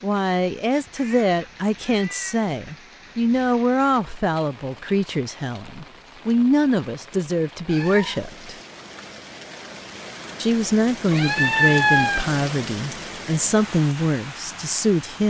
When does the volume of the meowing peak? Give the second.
12 s.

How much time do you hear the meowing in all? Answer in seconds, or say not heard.
3 s.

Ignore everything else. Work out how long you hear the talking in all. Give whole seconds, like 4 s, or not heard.
13 s.